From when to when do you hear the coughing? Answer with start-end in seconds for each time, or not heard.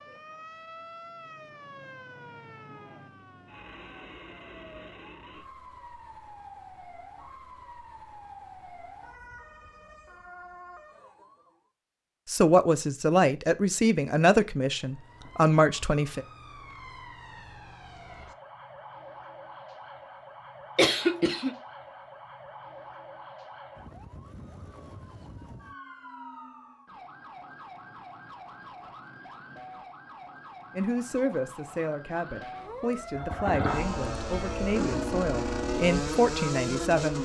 20.8-21.6.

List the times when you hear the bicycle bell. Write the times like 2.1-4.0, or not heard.
not heard.